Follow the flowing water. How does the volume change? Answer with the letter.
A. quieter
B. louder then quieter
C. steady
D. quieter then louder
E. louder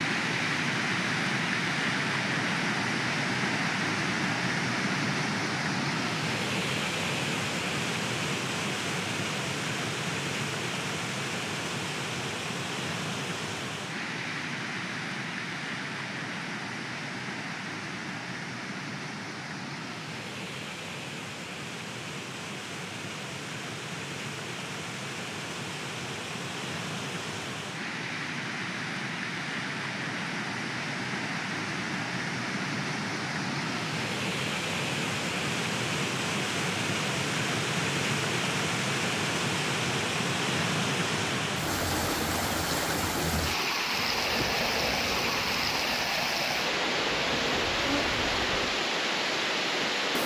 D.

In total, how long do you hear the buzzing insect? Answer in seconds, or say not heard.
5 s.